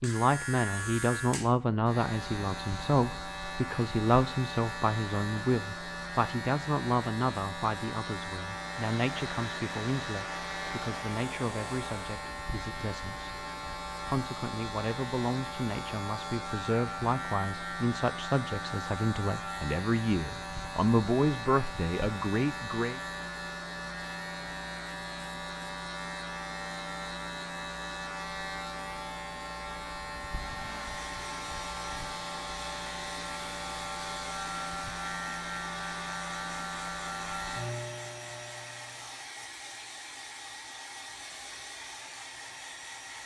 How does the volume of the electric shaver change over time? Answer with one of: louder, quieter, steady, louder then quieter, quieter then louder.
steady.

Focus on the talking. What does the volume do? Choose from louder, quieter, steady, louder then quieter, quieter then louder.
quieter then louder.